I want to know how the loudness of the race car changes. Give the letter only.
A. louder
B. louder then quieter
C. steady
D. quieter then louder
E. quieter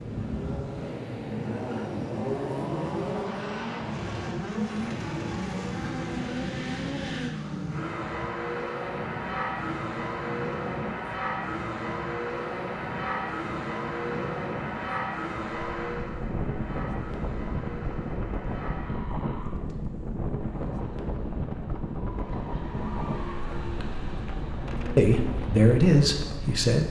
E.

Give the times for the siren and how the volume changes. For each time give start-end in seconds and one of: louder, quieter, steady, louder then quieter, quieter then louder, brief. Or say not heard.
not heard.